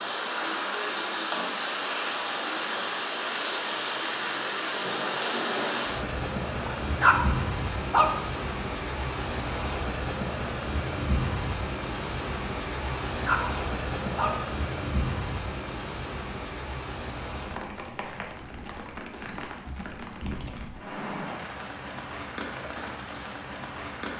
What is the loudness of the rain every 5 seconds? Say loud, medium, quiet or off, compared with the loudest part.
loud, loud, loud, medium, medium.